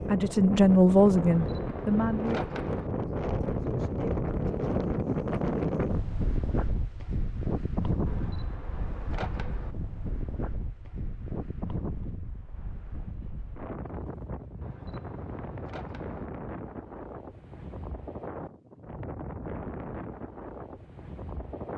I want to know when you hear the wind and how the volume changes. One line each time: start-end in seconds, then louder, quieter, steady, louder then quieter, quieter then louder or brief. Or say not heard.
0.0-21.7 quieter.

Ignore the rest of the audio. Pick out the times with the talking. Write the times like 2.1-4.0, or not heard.
0.0-2.4.